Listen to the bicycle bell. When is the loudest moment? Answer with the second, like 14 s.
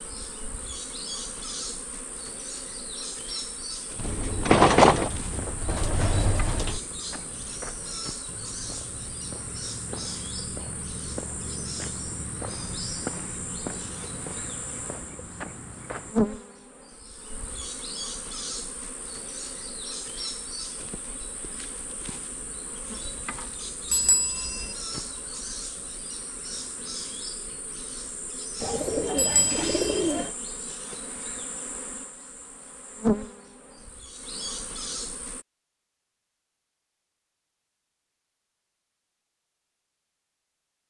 5 s.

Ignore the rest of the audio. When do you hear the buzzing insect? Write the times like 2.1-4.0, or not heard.
0.0-35.5.